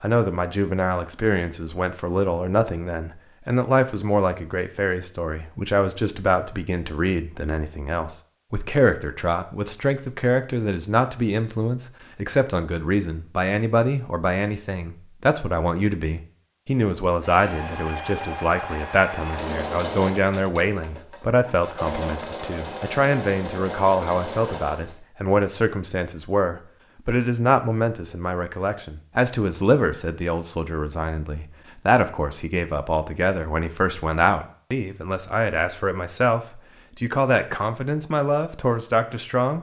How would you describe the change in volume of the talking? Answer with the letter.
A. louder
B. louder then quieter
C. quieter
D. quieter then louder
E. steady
E.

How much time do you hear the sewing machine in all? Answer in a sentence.
The sewing machine can be heard for 8 seconds in total.